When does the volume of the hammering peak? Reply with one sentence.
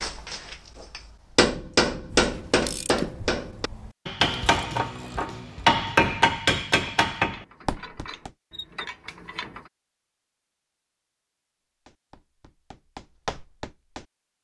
The loudest moment of the hammering is at 6 seconds.